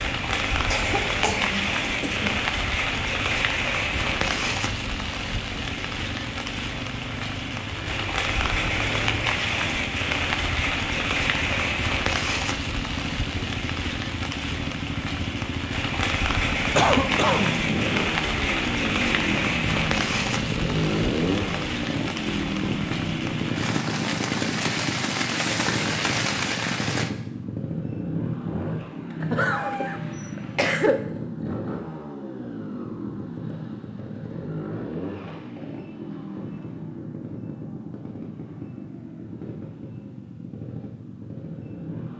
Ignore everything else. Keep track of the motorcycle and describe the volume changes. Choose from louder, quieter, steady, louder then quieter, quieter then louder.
louder then quieter.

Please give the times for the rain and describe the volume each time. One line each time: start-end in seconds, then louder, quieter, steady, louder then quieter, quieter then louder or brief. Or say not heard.
0.0-27.1 steady.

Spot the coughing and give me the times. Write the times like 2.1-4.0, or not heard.
0.7-2.5, 16.8-17.5, 29.2-31.1.